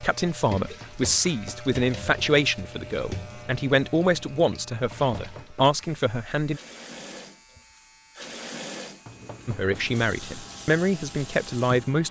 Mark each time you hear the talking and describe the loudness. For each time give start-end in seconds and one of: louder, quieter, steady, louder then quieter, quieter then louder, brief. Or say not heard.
0.0-6.6 steady
9.4-12.0 brief.